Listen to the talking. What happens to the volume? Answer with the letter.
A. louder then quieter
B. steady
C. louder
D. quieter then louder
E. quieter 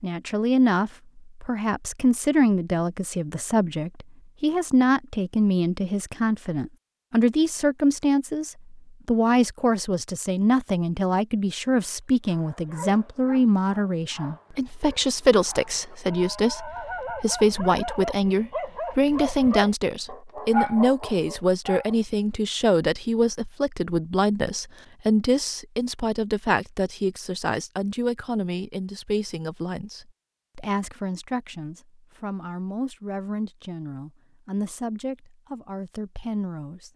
E.